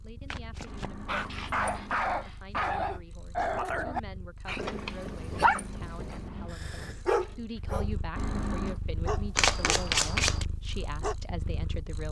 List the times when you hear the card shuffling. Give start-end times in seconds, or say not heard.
0.3-0.9, 4.7-5.6, 9.3-10.4.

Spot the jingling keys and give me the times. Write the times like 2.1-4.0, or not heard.
0.7-2.3, 4.7-6.5, 8.2-8.8.